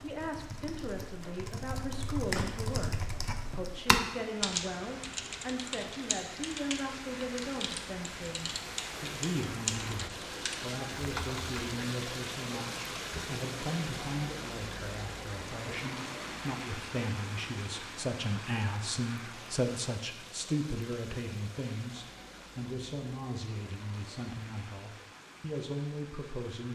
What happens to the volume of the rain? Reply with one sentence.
The loudness of the rain goes up, then down.